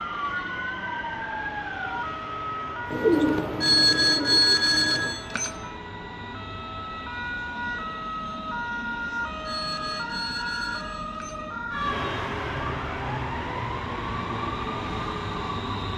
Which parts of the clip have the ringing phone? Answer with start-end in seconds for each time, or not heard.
3.6-5.5, 9.4-11.4.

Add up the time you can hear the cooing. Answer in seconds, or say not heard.
2 s.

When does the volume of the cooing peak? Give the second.
3 s.